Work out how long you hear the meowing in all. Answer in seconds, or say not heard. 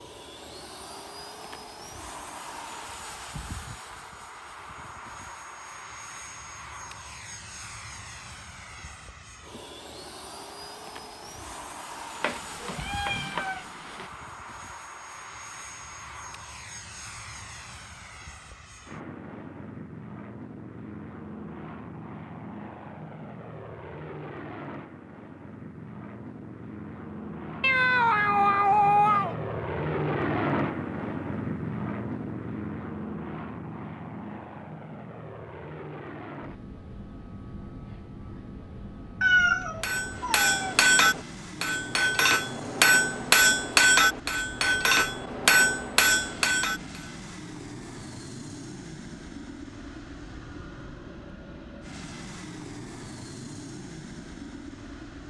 5 s.